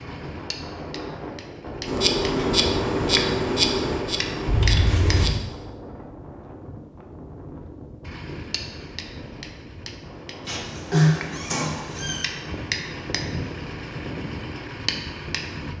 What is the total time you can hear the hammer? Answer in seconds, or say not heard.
13 s.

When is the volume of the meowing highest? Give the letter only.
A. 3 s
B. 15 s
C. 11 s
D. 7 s
C.